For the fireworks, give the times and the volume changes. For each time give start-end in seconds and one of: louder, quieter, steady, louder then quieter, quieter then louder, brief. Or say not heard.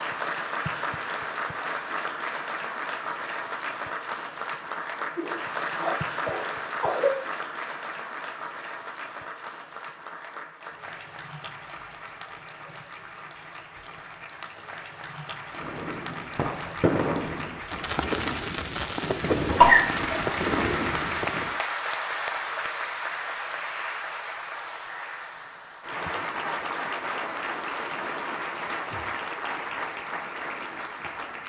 15.5-21.6 steady.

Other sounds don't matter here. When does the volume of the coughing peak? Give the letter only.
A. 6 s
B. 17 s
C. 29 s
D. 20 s
D.